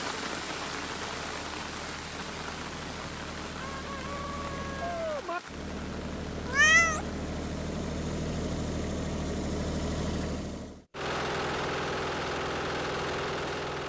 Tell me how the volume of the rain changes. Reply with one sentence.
The volume of the rain goes down.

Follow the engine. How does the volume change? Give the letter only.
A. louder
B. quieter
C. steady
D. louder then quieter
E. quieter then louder
A.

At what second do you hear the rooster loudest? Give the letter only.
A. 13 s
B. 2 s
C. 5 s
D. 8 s
C.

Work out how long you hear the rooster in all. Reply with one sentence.
You can hear the rooster for 2 seconds altogether.